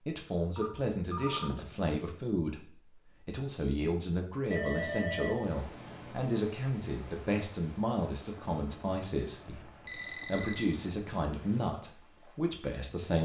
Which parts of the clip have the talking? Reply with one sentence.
The talking can be heard from 0.1 to 13.2 s.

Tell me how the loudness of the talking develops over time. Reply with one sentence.
The loudness of the talking stays about the same.